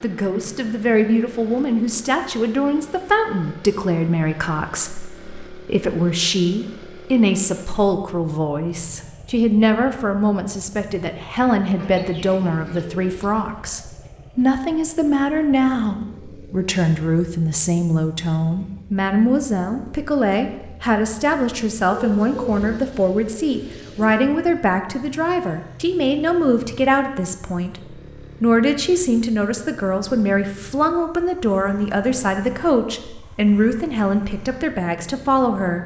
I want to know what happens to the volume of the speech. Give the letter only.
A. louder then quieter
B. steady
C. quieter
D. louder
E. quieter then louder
B.